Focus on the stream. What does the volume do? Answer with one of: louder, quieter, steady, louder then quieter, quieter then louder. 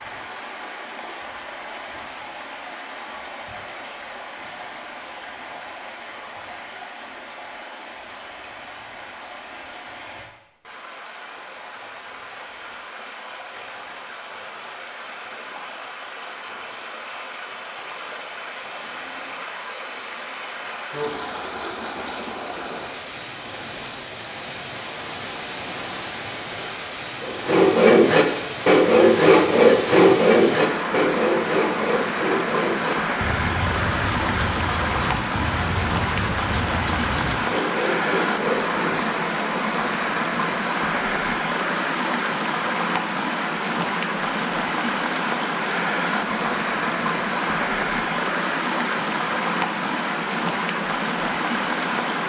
louder.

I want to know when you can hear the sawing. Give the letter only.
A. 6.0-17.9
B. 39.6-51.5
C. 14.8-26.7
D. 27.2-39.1
D.